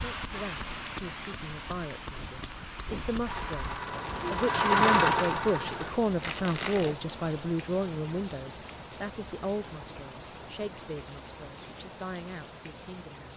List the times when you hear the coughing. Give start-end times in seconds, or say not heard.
not heard.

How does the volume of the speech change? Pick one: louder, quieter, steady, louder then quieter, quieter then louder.
louder then quieter.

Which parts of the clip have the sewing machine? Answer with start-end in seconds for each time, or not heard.
3.2-7.0.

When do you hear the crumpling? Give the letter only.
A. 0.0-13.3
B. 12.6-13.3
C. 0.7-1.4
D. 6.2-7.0
D.